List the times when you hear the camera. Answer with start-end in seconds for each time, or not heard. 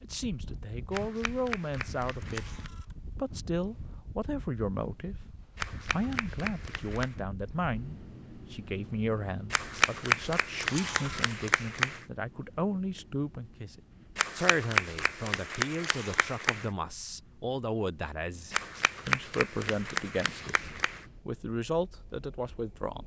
2.2-3.0, 10.6-11.3, 15.8-16.2.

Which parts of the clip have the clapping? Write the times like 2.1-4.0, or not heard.
0.9-2.7, 5.5-7.2, 9.5-12.1, 14.2-16.7, 18.5-21.1.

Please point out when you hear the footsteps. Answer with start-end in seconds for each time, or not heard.
not heard.